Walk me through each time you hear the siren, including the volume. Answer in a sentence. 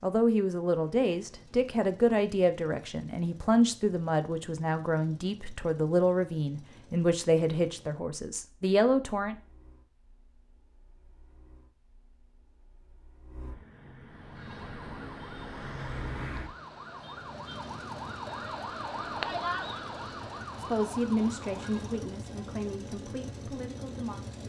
You can hear the siren from 14.1 to 22.1 s, getting louder then quieter.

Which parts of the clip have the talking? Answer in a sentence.
The talking can be heard from 0.0 to 9.3 s and from 20.6 to 24.4 s.